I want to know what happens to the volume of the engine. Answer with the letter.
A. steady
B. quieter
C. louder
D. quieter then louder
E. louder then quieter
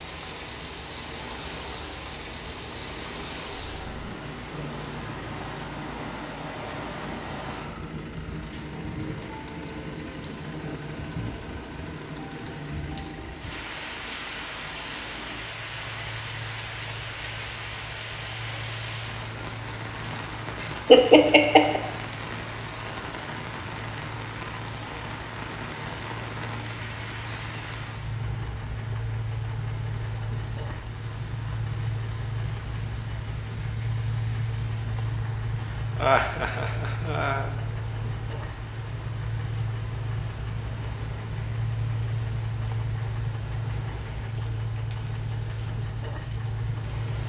C.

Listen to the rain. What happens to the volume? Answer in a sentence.
The volume of the rain goes down.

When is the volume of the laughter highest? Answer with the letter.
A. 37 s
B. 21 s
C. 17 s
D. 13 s
B.